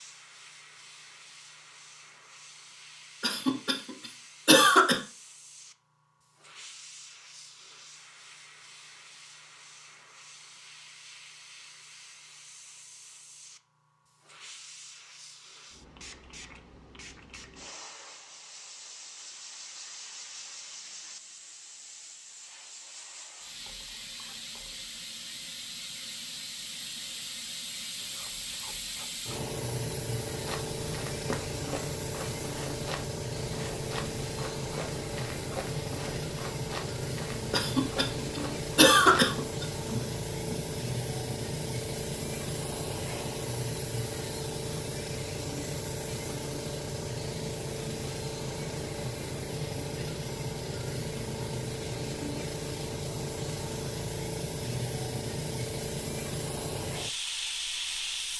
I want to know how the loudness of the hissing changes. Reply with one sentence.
The loudness of the hissing goes up.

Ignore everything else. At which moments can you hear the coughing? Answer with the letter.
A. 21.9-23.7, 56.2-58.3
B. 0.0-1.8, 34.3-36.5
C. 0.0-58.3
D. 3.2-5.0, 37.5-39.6
D.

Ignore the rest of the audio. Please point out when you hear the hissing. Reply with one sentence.
You can hear the hissing from 0.0 to 58.3 s.